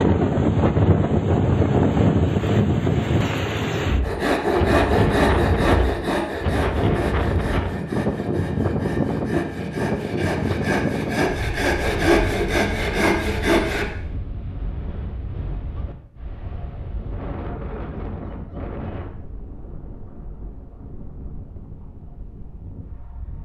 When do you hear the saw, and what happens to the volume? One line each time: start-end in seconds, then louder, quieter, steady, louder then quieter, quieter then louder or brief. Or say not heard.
4.0-13.8 quieter then louder.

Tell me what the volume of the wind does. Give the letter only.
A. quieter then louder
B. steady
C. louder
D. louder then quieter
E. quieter
E.